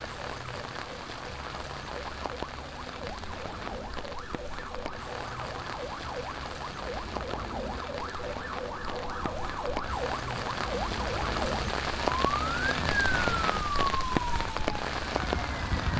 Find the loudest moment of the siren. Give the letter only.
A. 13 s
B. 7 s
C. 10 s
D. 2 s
A.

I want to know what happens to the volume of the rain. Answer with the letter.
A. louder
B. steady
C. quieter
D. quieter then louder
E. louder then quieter
A.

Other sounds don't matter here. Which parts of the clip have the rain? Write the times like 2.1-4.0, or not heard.
0.0-15.9.